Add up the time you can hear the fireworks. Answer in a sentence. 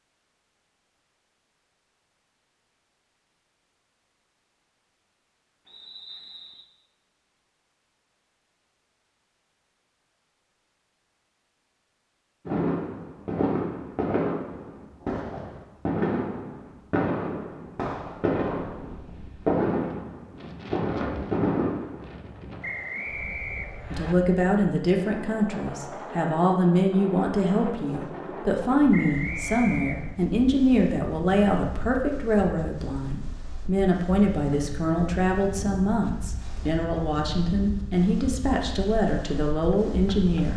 You can hear the fireworks for 10 seconds altogether.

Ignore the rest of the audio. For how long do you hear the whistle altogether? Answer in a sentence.
The whistle can be heard for 4 seconds in total.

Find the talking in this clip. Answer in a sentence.
You can hear the talking from 23.9 to 40.5 s.